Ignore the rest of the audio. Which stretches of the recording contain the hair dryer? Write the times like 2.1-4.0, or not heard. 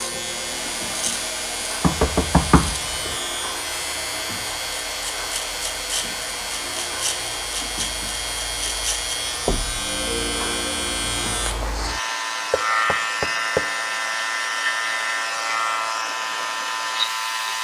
0.1-17.5.